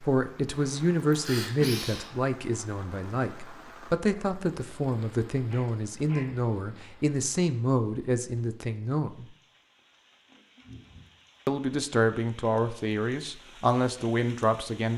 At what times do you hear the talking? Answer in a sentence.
You can hear the talking from 0.0 to 9.2 s and from 11.4 to 14.9 s.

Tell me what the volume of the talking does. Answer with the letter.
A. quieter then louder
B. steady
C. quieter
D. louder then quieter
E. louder
B.